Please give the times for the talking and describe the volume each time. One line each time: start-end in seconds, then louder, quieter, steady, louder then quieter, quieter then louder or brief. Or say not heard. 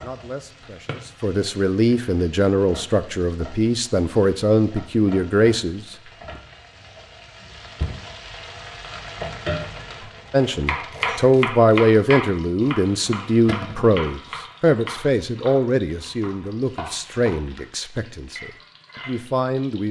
0.0-6.0 louder
10.3-19.8 quieter.